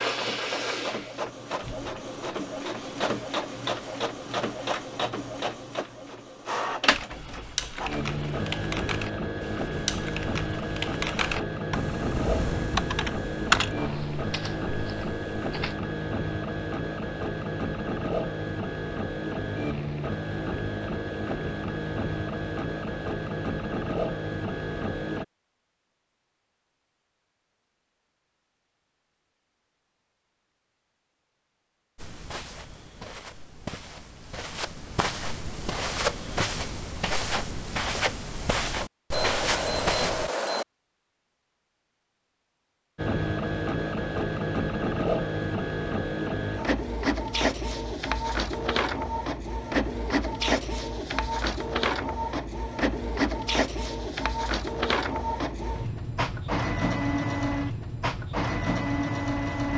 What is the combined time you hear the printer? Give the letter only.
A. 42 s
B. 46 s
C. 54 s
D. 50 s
A.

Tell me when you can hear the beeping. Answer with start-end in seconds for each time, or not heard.
39.1-40.6.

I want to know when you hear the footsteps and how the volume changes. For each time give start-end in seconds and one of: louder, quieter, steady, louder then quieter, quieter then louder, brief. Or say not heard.
31.9-40.3 louder.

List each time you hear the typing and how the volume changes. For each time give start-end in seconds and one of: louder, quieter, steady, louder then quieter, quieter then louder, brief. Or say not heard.
6.8-15.8 louder then quieter.